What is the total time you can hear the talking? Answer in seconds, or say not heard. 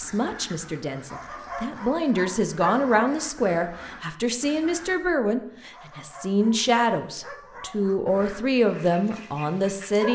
10 s.